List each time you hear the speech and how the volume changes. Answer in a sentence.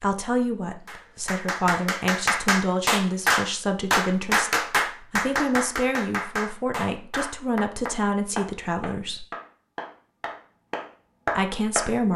The speech can be heard from 0.0 to 9.2 s, at a steady volume; and briefly from 11.3 to 12.1 s.